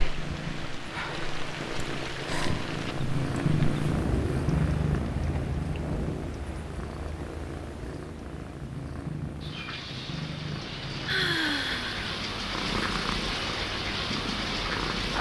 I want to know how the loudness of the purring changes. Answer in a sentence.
The volume of the purring goes up, then down.